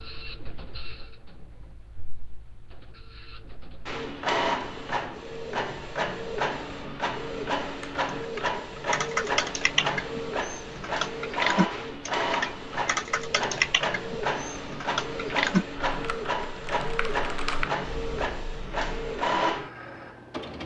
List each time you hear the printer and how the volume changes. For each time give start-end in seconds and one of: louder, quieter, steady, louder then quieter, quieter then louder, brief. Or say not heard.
0.0-20.6 louder.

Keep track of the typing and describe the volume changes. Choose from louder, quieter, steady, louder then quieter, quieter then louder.
quieter.